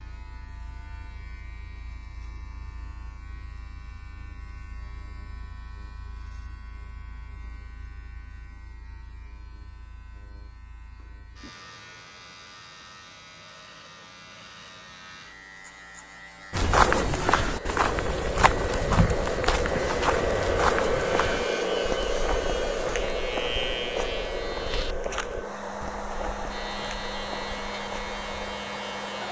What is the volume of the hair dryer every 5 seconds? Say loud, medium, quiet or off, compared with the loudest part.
off, off, off, loud, loud, medium.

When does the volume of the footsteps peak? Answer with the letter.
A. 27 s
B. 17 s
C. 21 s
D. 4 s
B.